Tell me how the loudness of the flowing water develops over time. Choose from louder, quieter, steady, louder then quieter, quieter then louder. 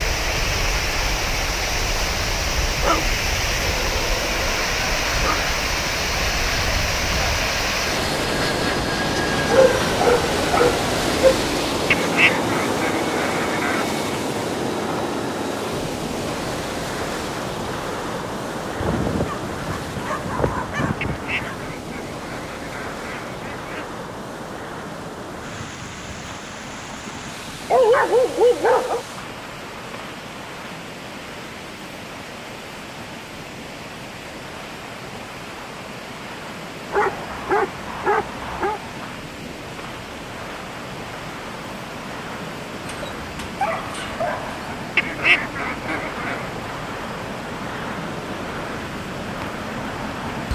quieter.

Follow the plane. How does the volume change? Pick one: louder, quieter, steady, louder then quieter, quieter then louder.
quieter then louder.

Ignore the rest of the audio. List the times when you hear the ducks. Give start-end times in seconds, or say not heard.
11.9-13.8, 21.0-23.9, 45.0-46.5.